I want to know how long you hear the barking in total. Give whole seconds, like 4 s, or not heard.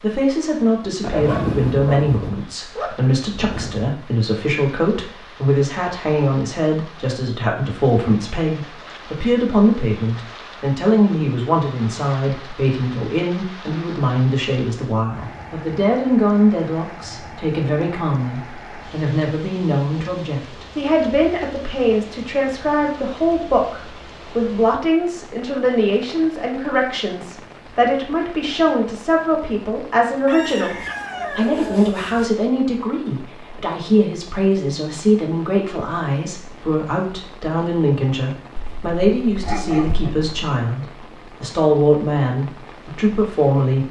5 s.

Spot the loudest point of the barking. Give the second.
1 s.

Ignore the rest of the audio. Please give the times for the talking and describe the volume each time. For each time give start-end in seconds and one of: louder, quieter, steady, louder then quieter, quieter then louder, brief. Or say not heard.
0.0-30.8 steady
31.4-43.8 steady.